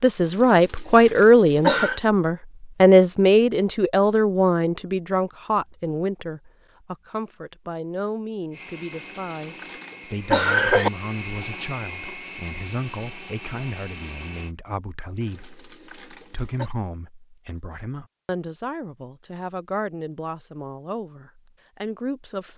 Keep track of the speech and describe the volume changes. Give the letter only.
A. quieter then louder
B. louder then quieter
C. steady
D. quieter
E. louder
D.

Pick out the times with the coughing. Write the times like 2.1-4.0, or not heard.
0.2-2.0, 8.9-10.9, 15.2-16.7.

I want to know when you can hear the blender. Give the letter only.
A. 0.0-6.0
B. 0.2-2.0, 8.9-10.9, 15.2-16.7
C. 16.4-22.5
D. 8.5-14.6
D.